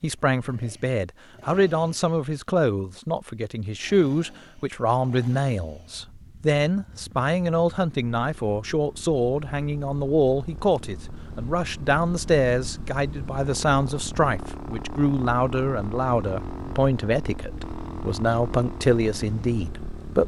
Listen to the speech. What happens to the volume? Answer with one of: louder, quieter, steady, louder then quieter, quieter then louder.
steady.